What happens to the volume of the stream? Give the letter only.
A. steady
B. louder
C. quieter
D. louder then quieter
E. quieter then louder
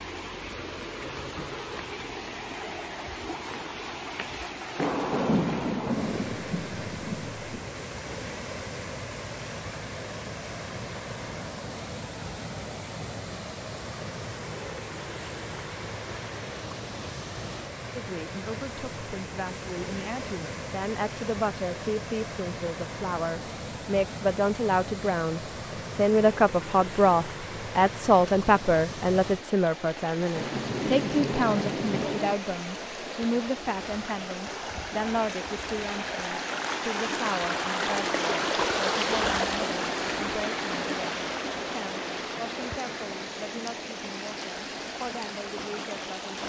B.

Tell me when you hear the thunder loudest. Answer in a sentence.
The volume of the thunder peaks at 5 seconds.